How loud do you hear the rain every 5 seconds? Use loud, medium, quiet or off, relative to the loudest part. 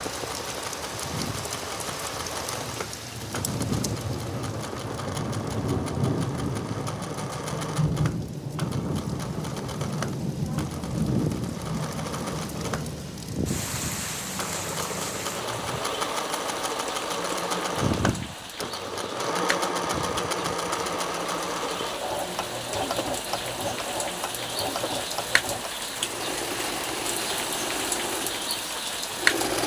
medium, loud, loud, medium, medium, loud.